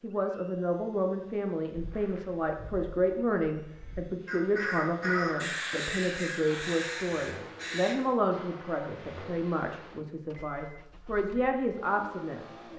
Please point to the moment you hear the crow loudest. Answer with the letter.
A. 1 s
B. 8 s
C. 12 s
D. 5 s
D.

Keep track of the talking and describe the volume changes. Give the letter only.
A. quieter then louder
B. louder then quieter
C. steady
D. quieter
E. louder
C.